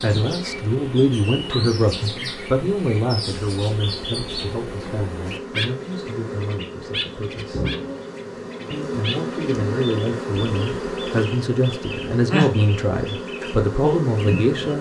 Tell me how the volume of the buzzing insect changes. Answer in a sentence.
The volume of the buzzing insect goes up.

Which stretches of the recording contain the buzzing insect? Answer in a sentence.
You can hear the buzzing insect from 0.0 to 14.7 s.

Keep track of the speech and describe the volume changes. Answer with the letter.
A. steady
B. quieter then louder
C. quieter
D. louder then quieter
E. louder
B.